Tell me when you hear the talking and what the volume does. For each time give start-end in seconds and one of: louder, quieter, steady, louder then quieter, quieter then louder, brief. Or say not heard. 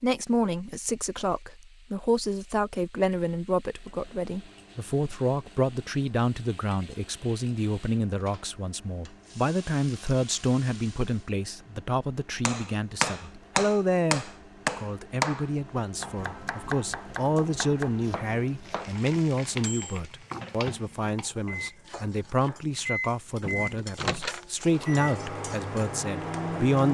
0.0-26.8 steady.